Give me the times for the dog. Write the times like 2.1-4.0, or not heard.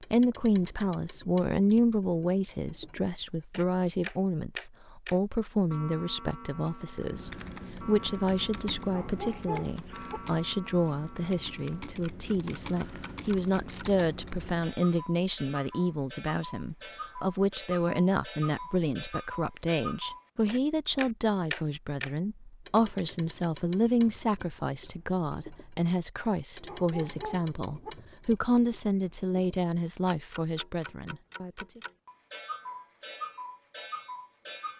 8.8-10.2, 26.6-27.9.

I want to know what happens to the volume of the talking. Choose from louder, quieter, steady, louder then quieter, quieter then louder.
steady.